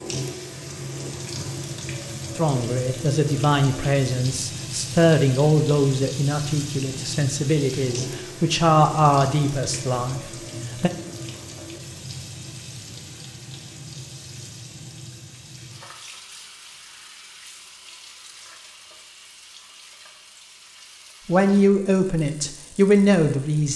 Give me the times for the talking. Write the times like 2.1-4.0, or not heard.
2.4-10.9, 21.2-23.7.